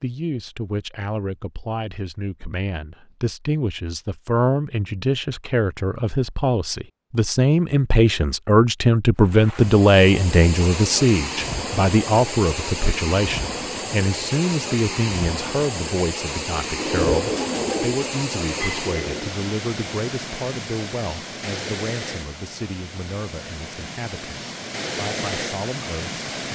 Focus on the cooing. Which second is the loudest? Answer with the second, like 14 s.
17 s.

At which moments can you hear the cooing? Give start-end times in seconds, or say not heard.
16.8-19.3.